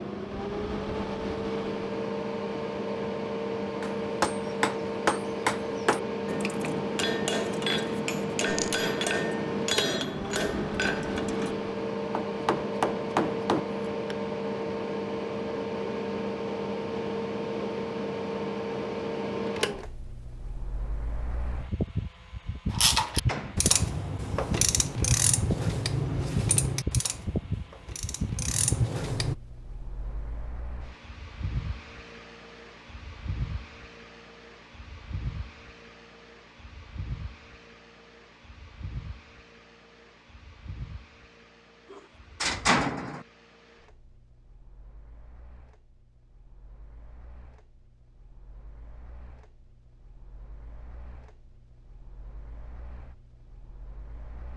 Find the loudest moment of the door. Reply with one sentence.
The volume of the door peaks at 43 seconds.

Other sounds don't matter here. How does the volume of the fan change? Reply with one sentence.
The loudness of the fan goes down.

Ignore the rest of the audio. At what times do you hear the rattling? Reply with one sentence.
You can hear the rattling from 8.4 to 8.8 s.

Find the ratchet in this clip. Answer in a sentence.
The ratchet can be heard from 22.7 to 29.4 s.